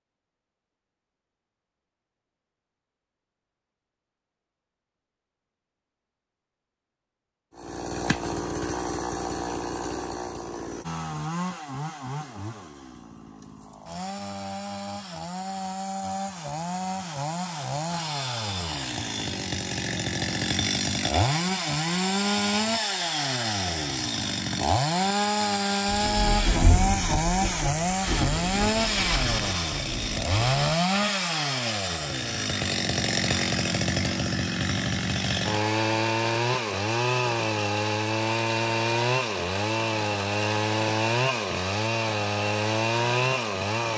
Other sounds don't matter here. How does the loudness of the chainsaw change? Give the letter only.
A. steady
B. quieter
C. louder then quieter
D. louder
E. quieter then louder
D.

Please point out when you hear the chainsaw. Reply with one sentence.
You can hear the chainsaw from 7.5 to 43.9 s.